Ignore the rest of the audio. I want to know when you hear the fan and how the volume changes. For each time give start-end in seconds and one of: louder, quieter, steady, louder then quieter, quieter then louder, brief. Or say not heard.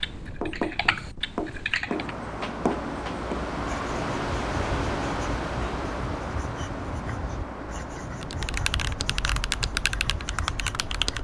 0.0-11.2 louder then quieter.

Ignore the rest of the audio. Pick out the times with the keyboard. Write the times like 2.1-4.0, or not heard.
0.0-2.1, 8.2-11.2.